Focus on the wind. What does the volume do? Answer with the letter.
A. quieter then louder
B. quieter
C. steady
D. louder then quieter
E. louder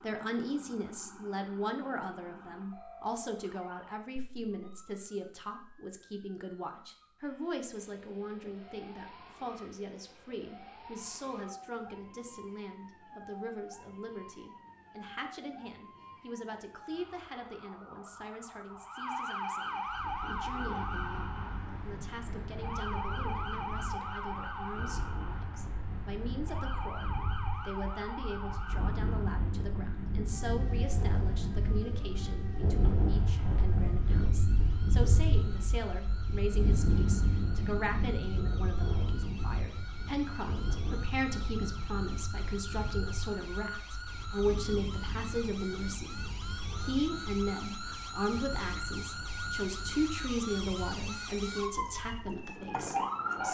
D.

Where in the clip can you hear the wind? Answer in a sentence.
The wind can be heard from 19.9 to 53.4 s.